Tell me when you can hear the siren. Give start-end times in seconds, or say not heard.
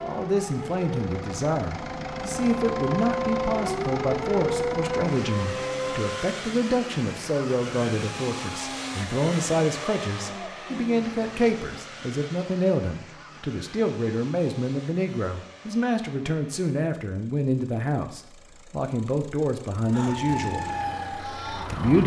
0.0-6.2, 19.8-22.0.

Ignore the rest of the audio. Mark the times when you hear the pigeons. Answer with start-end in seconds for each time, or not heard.
not heard.